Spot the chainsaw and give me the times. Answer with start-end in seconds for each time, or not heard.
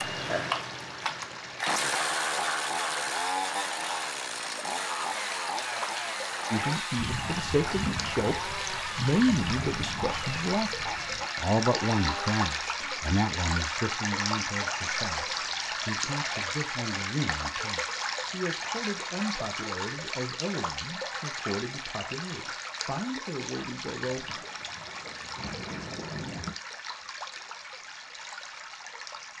0.0-12.4.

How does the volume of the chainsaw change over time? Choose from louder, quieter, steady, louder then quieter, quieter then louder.
quieter.